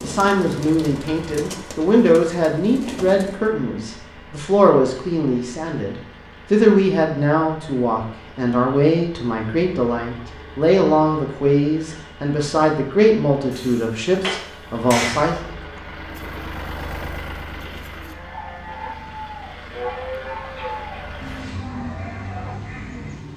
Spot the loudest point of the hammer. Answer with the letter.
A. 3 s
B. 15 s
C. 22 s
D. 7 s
B.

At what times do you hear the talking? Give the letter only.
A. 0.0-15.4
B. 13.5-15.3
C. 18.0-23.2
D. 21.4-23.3
A.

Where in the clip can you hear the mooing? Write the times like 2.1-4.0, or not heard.
18.0-23.2.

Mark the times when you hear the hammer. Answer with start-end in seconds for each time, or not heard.
13.5-15.3.